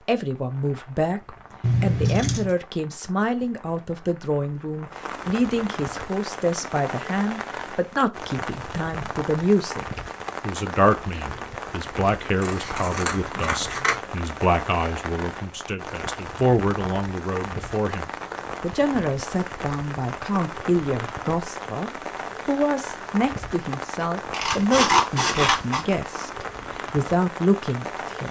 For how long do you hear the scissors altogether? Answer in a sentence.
The scissors can be heard for 4 seconds in total.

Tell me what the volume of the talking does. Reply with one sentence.
The volume of the talking stays about the same.